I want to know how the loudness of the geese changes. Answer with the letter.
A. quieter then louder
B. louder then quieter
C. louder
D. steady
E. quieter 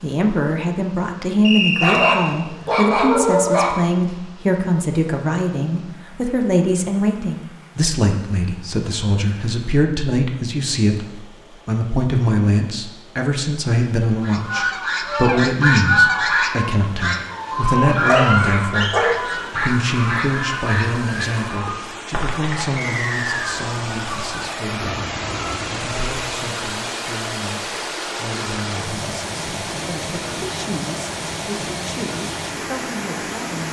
E.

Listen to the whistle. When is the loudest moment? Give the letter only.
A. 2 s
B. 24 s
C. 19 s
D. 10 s
A.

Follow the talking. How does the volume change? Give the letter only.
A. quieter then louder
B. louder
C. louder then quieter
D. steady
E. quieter
E.